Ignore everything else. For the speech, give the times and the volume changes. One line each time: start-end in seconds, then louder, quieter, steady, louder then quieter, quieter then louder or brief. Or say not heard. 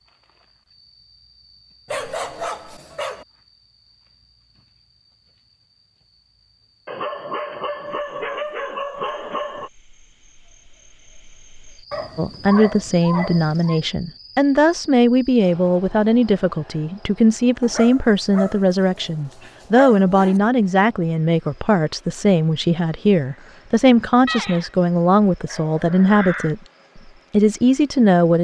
12.2-26.6 steady
27.3-28.3 brief.